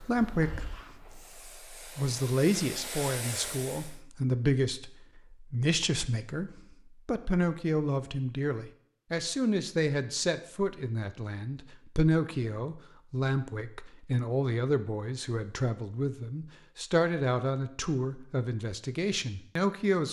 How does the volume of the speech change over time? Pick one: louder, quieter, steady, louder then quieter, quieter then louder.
steady.